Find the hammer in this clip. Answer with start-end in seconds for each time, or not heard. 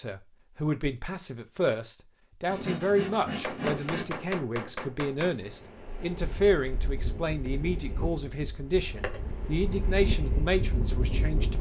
3.4-5.3.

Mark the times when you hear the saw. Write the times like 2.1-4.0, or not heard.
2.5-4.2.